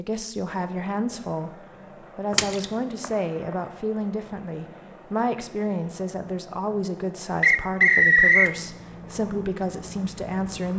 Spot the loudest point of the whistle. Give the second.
8 s.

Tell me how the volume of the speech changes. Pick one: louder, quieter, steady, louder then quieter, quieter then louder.
steady.